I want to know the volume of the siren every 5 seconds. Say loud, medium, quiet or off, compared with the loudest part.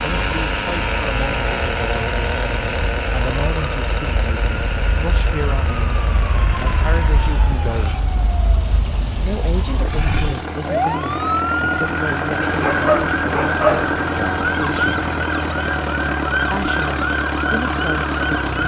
medium, medium, loud, loud.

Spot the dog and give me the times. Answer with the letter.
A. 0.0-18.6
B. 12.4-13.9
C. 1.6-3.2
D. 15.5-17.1
B.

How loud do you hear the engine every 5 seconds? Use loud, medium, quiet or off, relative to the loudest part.
loud, medium, loud, loud.